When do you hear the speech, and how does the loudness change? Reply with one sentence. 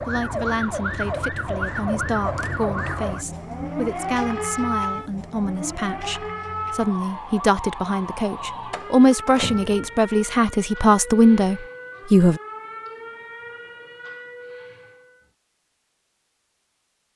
The speech can be heard from 0.0 to 12.4 s, getting louder.